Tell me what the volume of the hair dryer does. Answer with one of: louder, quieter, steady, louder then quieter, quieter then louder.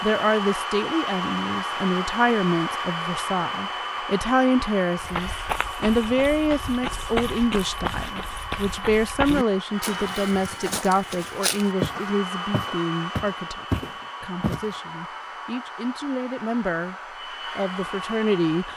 quieter.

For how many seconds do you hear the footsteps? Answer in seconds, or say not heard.
10 s.